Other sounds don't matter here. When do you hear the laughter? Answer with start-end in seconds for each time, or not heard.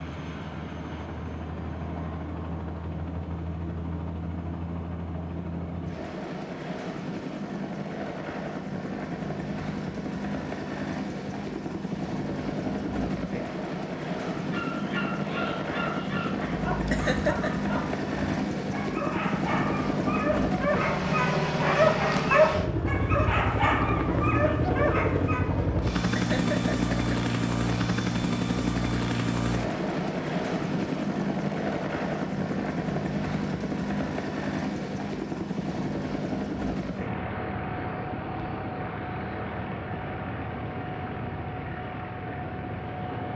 16.9-17.6, 26.1-26.9.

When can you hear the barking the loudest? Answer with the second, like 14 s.
22 s.